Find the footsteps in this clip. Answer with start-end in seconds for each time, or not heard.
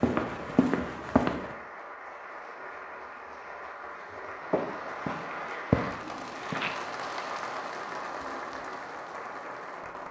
0.0-1.6, 4.4-6.8.